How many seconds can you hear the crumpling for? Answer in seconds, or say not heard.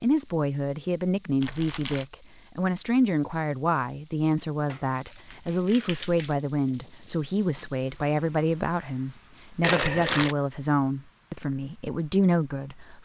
3 s.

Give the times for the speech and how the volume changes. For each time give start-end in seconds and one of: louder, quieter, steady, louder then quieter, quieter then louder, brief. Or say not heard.
0.0-12.9 steady.